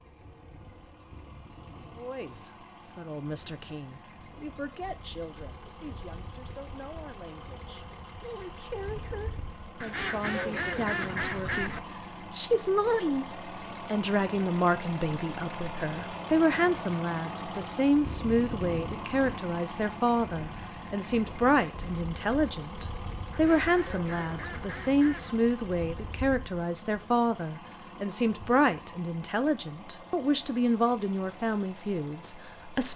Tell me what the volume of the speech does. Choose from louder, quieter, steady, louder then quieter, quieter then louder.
louder.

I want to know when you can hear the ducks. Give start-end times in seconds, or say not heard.
9.8-11.8, 23.3-25.4.